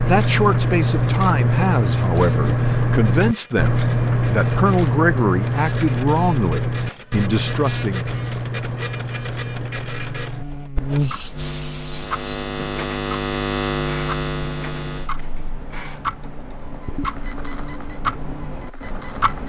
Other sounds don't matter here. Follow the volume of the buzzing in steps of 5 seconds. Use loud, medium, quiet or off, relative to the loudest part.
off, off, loud, quiet.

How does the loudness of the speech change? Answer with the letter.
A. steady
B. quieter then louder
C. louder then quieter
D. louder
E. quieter
A.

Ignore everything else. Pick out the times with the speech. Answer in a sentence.
You can hear the speech from 0.0 to 8.2 s.